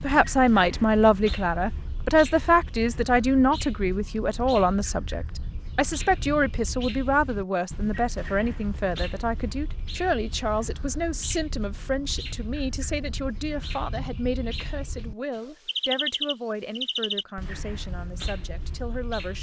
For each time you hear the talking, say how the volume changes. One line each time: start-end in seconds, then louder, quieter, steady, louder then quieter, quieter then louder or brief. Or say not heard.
0.0-19.3 quieter.